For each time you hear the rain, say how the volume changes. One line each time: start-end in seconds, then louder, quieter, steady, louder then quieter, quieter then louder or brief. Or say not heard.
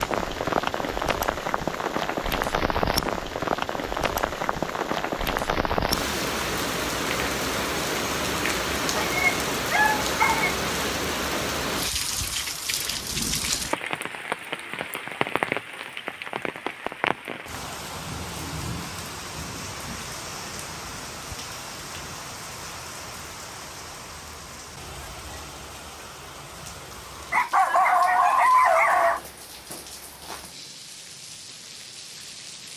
0.0-32.7 quieter.